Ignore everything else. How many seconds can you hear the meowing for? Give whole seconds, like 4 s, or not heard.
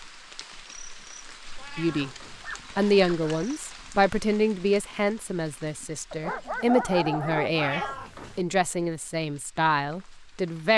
2 s.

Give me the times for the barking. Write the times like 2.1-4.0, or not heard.
1.9-3.5, 6.1-8.0.